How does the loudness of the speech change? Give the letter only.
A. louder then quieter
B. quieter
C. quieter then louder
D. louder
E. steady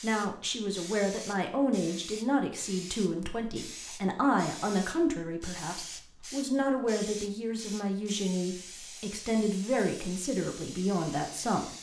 E.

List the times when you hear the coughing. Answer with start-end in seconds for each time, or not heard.
not heard.